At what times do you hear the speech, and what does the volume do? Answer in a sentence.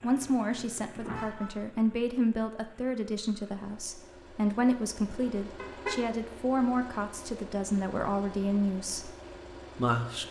The speech can be heard from 0.0 to 9.1 s, at a steady volume; and briefly from 9.8 to 10.2 s.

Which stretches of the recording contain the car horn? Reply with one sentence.
You can hear the car horn from 0.9 to 1.5 s and from 5.5 to 6.0 s.